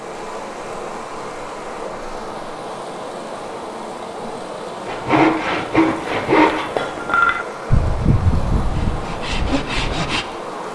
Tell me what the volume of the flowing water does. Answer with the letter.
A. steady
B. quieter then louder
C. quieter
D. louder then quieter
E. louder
A.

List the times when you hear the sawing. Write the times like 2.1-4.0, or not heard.
4.8-10.2.